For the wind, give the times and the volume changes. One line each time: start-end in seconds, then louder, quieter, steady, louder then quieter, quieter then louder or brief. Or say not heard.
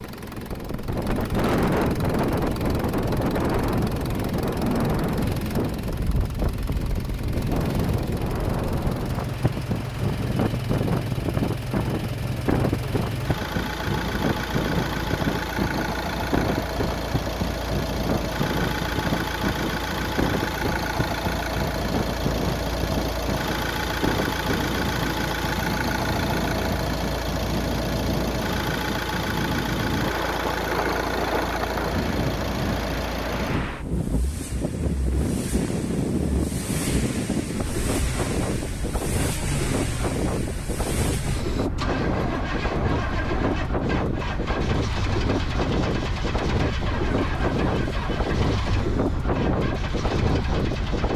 0.1-51.1 steady.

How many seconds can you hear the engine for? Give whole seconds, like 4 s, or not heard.
51 s.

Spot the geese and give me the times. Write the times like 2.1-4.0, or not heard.
not heard.